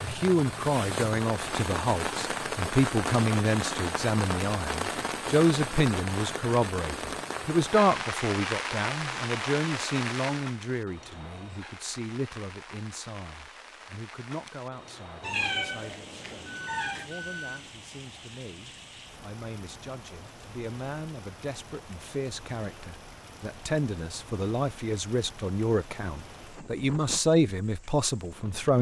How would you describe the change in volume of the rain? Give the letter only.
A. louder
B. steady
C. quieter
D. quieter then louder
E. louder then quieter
C.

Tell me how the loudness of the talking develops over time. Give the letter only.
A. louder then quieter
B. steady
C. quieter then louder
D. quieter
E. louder
C.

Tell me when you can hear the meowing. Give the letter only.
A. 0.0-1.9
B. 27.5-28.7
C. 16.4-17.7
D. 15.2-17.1
D.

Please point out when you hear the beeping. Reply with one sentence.
The beeping can be heard from 16.4 to 17.7 s.